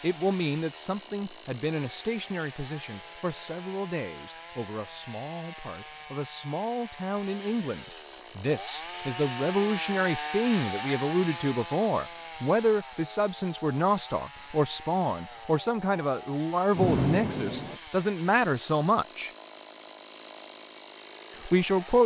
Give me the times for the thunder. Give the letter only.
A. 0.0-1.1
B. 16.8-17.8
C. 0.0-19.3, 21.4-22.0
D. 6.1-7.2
B.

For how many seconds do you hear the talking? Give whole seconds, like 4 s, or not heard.
20 s.